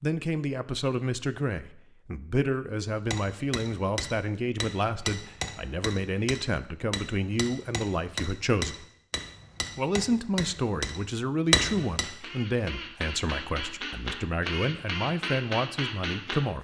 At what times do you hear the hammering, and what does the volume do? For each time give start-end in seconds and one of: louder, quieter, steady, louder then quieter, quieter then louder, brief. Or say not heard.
3.0-12.1 louder.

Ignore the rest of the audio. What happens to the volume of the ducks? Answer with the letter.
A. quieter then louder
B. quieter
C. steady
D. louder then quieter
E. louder
E.